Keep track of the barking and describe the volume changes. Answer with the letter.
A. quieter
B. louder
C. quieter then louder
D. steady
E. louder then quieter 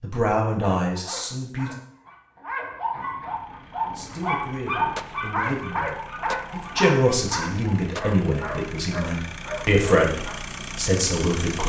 E.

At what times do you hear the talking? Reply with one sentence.
You can hear the talking from 0.0 to 1.8 s and from 4.0 to 11.6 s.